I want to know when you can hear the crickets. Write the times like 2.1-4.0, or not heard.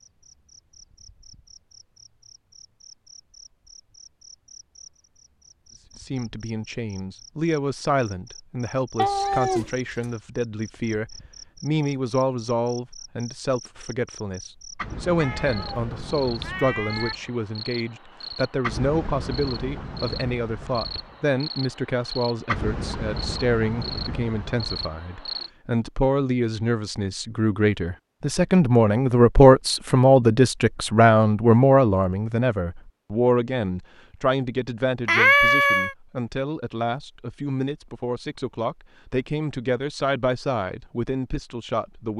0.0-25.5.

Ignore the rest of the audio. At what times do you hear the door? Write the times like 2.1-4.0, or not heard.
not heard.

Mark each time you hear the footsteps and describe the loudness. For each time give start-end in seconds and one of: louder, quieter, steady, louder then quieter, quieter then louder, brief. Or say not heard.
not heard.